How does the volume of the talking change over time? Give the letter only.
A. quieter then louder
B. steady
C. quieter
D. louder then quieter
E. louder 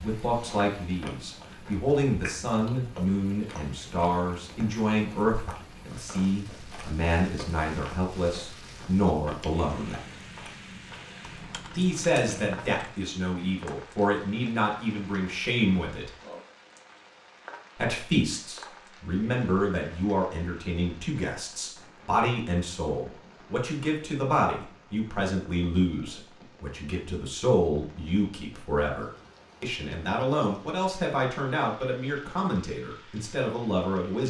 B.